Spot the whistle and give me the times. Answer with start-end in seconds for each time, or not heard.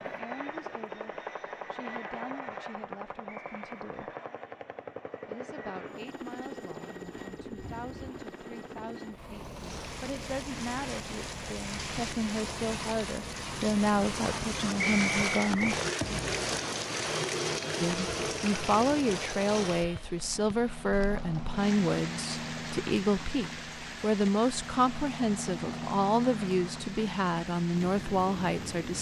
3.2-3.7, 14.8-15.8.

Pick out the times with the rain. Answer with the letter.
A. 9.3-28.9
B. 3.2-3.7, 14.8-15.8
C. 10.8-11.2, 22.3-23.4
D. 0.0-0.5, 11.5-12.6
A.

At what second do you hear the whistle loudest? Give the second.
15 s.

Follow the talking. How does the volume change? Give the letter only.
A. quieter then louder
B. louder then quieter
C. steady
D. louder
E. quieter
D.